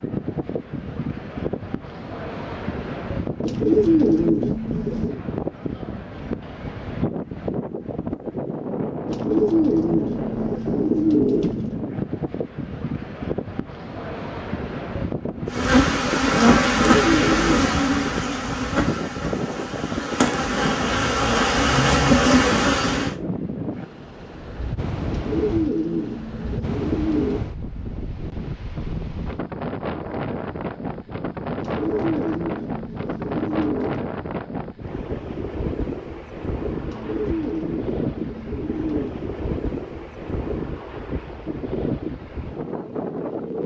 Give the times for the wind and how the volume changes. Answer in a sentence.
The wind can be heard from 0.0 to 43.6 s, at a steady volume.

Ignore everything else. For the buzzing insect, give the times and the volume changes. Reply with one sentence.
The buzzing insect can be heard from 15.5 to 23.1 s, getting quieter then louder.